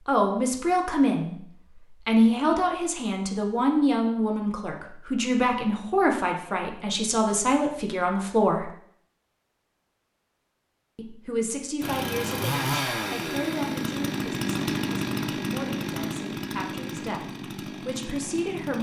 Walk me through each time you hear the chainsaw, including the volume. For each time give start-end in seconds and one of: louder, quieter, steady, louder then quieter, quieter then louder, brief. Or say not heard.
11.8-18.7 quieter.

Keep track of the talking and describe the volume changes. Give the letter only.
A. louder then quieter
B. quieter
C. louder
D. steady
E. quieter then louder
B.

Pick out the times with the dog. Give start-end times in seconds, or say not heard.
not heard.